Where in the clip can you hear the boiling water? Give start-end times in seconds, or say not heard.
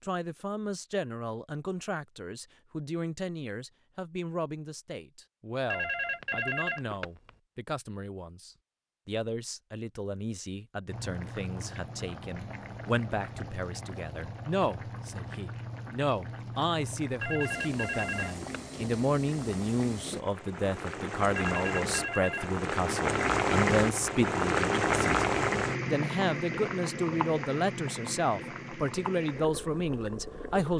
10.8-30.7.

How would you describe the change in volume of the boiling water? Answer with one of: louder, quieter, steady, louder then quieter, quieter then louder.
louder then quieter.